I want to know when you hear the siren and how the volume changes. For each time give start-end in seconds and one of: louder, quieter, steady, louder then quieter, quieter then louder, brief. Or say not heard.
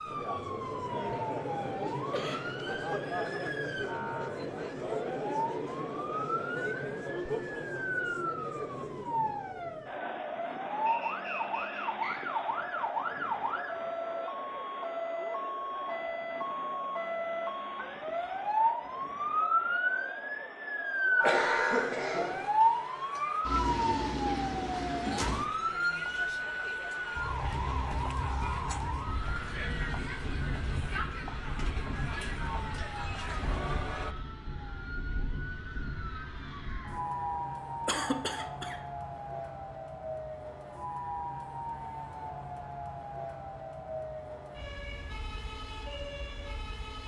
0.0-47.0 louder then quieter.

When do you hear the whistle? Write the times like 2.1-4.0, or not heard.
10.8-12.2.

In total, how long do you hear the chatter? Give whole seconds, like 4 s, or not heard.
34 s.